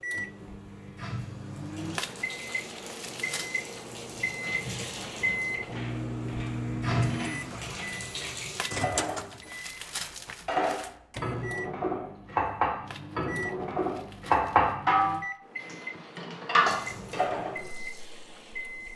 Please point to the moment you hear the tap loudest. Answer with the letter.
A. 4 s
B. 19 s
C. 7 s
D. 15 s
C.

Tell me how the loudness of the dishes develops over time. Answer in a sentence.
The loudness of the dishes goes up.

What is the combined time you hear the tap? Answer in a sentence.
The tap can be heard for 11 seconds in total.